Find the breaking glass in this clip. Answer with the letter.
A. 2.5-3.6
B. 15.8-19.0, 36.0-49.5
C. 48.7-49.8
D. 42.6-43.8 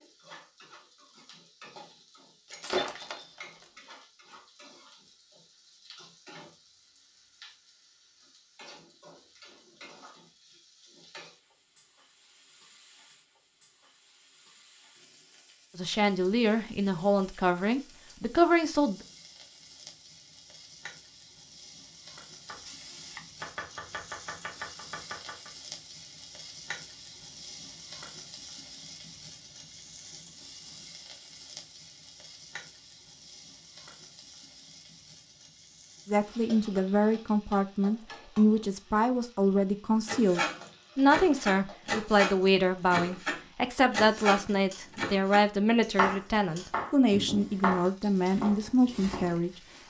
A.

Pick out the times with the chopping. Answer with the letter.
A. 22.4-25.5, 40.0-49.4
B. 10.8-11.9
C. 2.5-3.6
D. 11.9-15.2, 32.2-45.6
A.